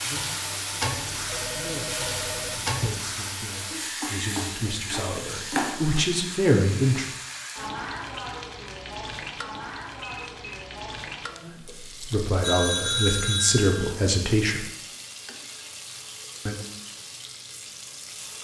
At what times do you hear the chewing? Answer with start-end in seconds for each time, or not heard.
not heard.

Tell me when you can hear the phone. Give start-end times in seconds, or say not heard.
0.9-3.2, 10.0-10.4, 12.4-13.9.